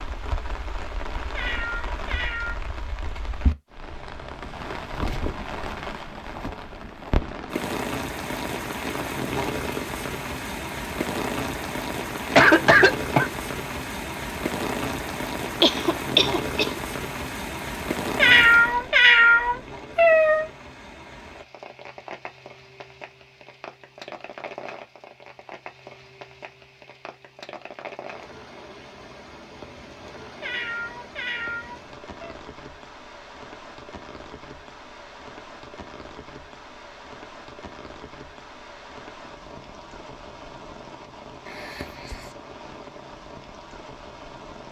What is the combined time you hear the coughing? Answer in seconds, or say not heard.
3 s.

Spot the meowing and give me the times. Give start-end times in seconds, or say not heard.
1.3-2.5, 18.1-20.4, 30.4-32.4.